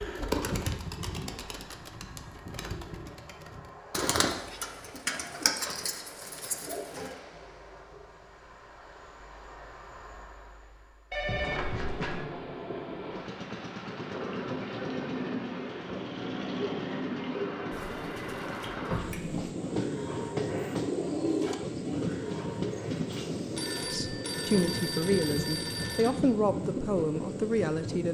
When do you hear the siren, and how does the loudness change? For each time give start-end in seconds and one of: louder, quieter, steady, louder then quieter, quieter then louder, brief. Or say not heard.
not heard.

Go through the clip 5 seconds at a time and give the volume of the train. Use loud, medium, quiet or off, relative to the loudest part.
quiet, quiet, loud, loud, loud, loud.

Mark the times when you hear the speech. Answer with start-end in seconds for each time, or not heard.
23.9-28.1.